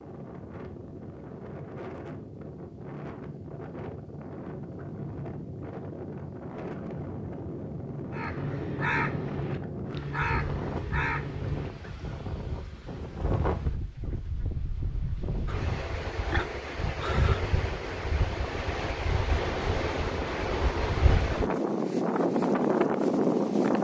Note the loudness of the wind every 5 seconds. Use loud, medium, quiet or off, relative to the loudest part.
quiet, medium, medium, medium, loud.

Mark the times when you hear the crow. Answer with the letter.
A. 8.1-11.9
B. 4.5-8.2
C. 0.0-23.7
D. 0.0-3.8
A.